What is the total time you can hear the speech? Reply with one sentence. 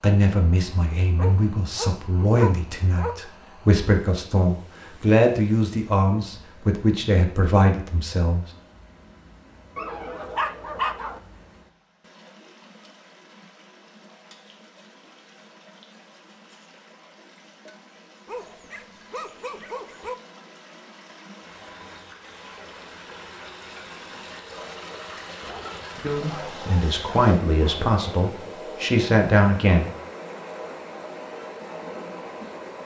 You can hear the speech for 12 seconds altogether.